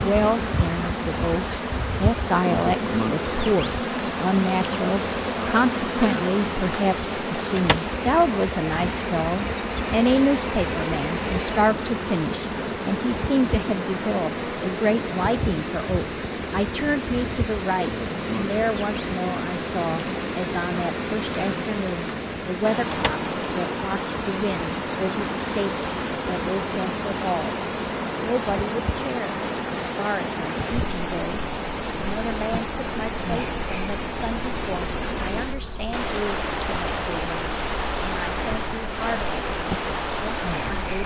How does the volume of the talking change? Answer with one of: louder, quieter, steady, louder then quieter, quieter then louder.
quieter.